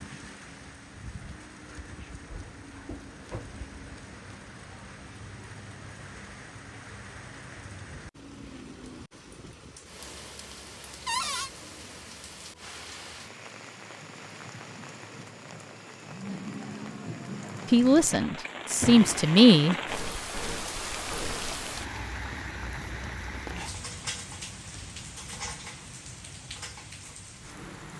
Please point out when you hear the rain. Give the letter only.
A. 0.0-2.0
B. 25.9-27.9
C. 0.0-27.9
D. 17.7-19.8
C.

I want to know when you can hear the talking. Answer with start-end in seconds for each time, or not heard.
17.7-19.8.